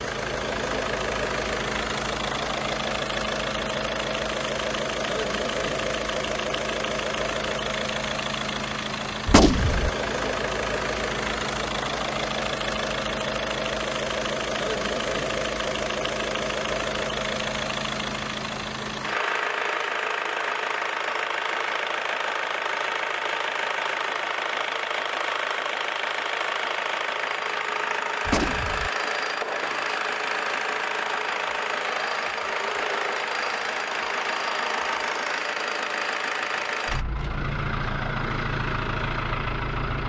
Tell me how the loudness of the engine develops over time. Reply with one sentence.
The volume of the engine stays about the same.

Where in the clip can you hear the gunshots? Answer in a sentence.
The gunshots can be heard from 9.2 to 9.9 s and from 28.2 to 28.9 s.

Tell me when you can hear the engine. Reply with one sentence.
The engine can be heard from 0.0 to 40.0 s.